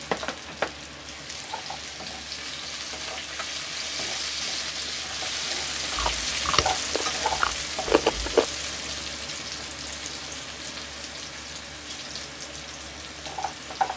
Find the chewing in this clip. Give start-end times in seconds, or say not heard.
6.0-8.5.